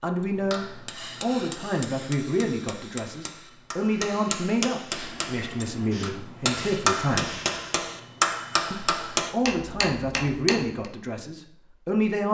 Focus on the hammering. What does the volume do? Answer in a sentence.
The loudness of the hammering goes up.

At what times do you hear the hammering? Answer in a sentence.
The hammering can be heard from 0.1 to 10.9 s.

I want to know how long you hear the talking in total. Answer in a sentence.
You can hear the talking for 11 seconds altogether.